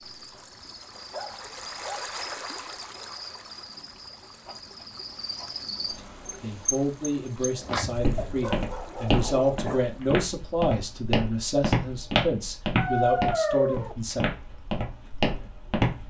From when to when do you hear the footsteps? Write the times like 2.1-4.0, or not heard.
7.4-16.0.